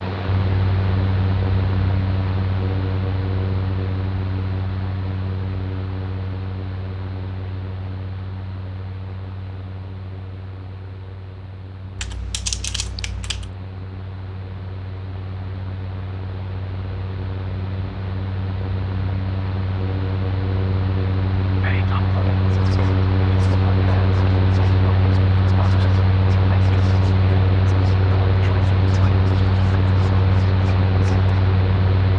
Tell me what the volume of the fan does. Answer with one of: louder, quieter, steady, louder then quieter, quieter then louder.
quieter then louder.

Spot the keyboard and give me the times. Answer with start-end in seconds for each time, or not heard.
11.9-13.5.